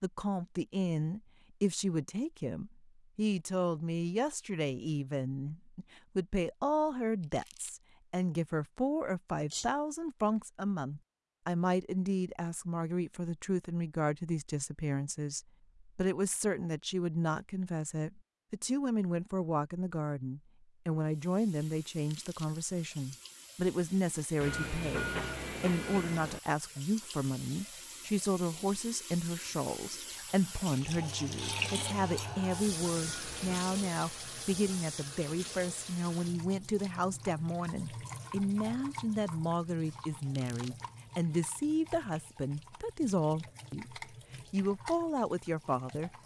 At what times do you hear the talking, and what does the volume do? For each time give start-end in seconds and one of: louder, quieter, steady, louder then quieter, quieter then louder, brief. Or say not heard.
0.0-46.2 steady.